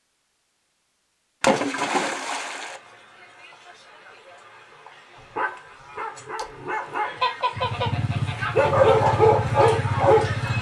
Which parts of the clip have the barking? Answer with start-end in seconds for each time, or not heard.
5.2-10.5.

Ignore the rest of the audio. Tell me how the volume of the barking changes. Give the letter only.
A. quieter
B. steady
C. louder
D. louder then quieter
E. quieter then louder
C.